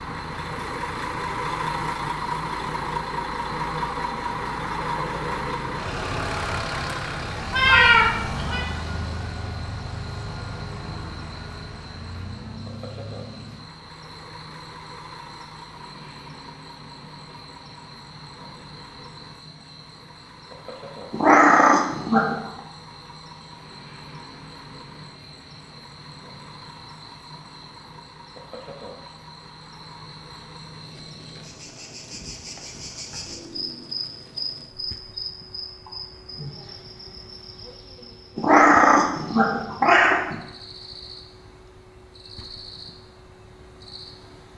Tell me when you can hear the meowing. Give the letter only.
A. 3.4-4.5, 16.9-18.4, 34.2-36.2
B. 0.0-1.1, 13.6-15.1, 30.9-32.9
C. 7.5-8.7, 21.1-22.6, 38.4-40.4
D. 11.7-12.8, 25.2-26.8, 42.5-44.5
C.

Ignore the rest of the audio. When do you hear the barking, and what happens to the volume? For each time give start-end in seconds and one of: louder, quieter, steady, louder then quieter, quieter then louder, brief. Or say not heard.
not heard.